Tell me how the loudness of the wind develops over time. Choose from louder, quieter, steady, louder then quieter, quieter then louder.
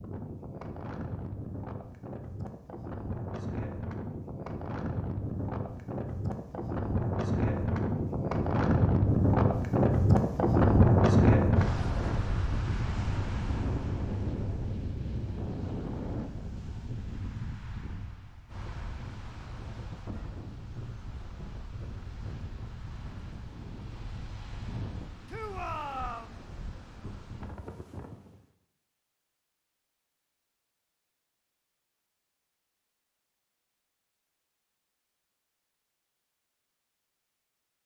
louder then quieter.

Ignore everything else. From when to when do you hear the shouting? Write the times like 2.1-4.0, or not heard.
25.2-26.4.